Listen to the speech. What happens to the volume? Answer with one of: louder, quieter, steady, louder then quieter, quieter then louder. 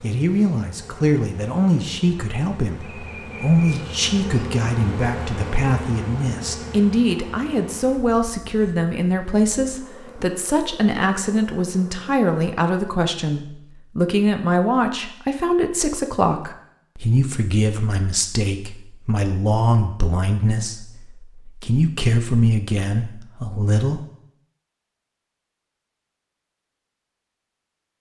steady.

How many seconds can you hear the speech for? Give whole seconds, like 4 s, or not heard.
24 s.